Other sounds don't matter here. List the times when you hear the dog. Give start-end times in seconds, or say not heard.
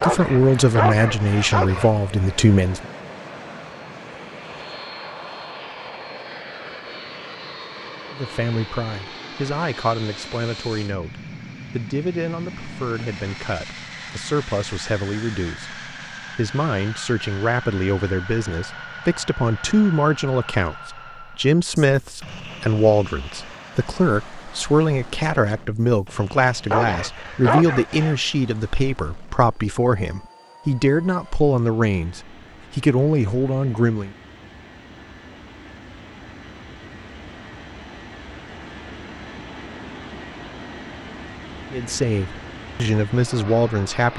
0.0-1.9, 26.7-28.1.